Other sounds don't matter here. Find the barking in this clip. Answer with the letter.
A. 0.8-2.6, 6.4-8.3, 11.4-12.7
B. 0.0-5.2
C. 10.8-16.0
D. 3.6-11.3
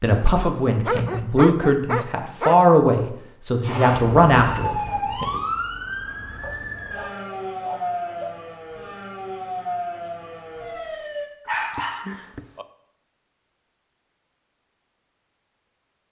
A.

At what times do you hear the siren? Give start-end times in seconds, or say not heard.
3.6-11.3.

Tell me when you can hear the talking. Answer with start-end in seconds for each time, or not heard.
0.0-5.2.